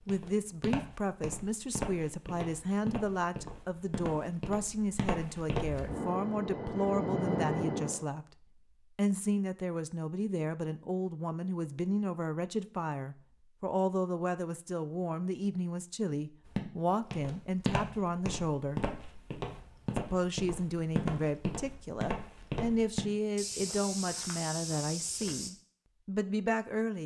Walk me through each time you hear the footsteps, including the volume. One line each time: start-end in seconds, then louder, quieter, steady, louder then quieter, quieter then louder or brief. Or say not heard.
0.0-5.9 steady
16.4-25.5 steady.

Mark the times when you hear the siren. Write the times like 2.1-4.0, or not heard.
not heard.